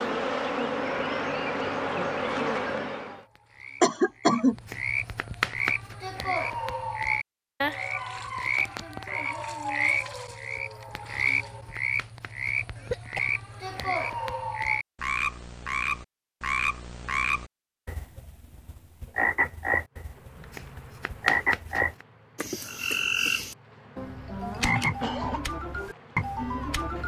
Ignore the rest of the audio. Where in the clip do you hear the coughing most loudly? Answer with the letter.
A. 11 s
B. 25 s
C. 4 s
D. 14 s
C.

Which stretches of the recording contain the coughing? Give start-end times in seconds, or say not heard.
3.8-4.5, 12.8-13.8, 24.5-25.4.